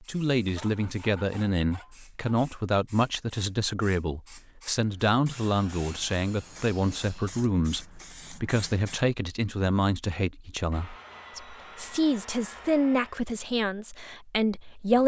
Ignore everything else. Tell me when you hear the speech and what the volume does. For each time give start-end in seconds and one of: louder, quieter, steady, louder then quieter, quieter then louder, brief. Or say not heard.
0.0-15.0 steady.